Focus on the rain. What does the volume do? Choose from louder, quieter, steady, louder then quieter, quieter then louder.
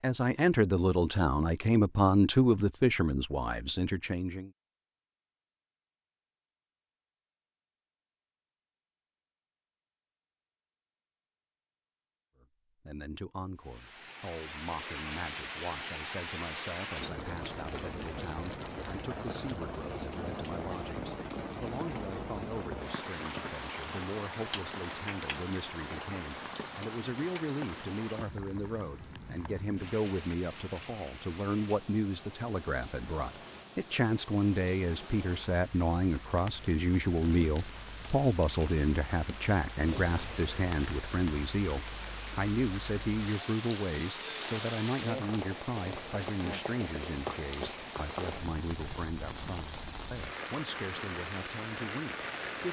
quieter then louder.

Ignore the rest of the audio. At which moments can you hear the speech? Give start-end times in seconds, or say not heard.
0.0-4.5, 12.4-52.6.